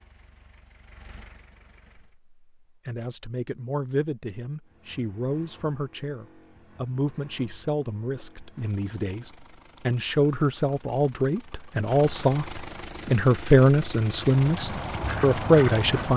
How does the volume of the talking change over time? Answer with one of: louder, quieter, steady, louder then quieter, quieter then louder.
louder.